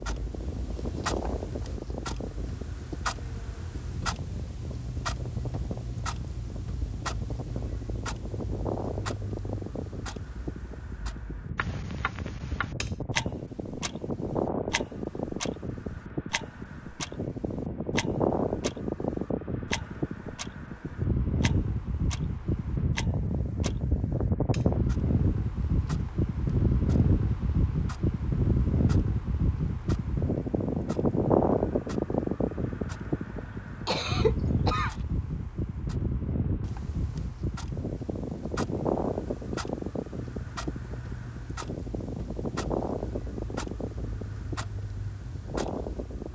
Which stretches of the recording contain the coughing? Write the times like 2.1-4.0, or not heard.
33.9-35.0.